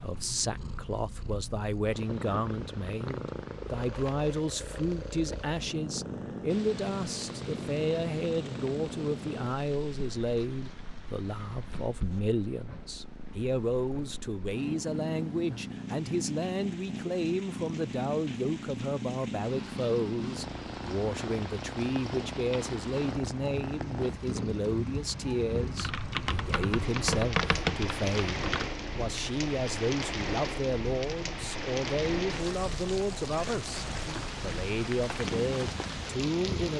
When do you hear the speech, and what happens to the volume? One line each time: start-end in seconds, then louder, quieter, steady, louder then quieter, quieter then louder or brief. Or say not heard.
0.0-36.7 steady.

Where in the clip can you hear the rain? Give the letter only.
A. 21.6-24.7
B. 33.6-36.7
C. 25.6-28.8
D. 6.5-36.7
D.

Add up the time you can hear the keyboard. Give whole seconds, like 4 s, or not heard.
3 s.